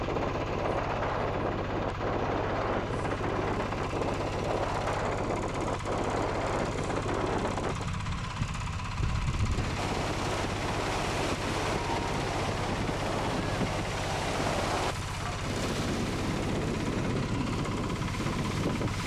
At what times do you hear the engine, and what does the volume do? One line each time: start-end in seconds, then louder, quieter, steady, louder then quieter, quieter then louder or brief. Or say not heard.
0.0-19.0 steady.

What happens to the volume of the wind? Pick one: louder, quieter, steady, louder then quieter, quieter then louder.
steady.